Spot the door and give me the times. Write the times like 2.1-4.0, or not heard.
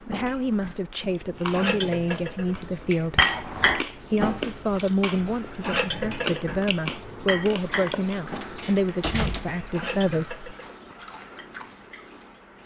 3.1-3.8, 8.2-9.8.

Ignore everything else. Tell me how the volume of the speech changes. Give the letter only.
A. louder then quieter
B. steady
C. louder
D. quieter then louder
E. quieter
B.